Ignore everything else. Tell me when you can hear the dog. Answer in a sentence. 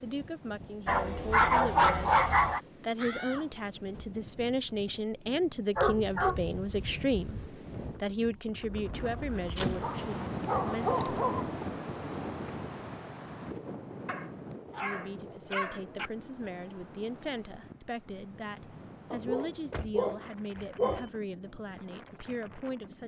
The dog can be heard from 0.8 to 2.6 s, from 5.8 to 7.5 s, from 9.8 to 11.6 s, from 14.1 to 16.1 s and from 19.1 to 21.1 s.